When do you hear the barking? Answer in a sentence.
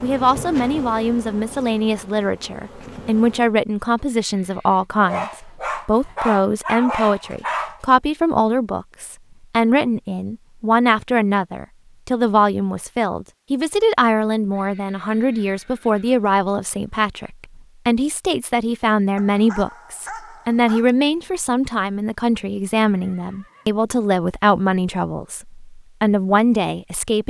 You can hear the barking from 5.0 to 7.8 s and from 19.1 to 20.9 s.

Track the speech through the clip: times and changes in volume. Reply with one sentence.
You can hear the speech from 0.0 to 27.2 s, at a steady volume.